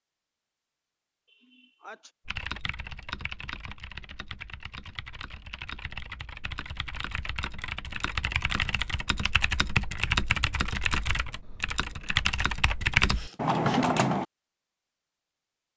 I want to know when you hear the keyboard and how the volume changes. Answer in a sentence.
You can hear the keyboard from 2.2 to 14.2 s, getting louder.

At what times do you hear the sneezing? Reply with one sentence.
The sneezing can be heard from 1.2 to 2.1 s and from 13.2 to 13.9 s.